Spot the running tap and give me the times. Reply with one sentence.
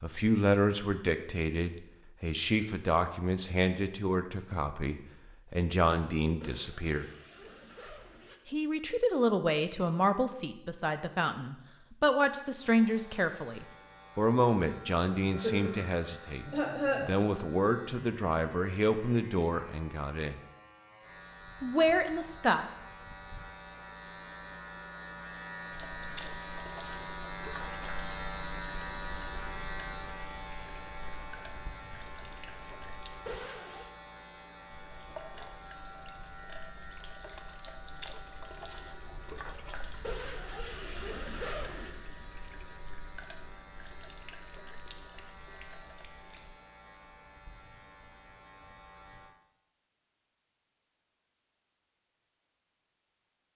You can hear the running tap from 25.7 to 33.2 s and from 34.6 to 46.5 s.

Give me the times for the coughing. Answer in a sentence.
You can hear the coughing from 15.2 to 17.1 s.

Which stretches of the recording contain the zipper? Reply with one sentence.
You can hear the zipper from 6.4 to 8.4 s, from 33.2 to 33.9 s and from 40.0 to 42.0 s.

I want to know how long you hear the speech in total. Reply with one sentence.
You can hear the speech for 20 seconds altogether.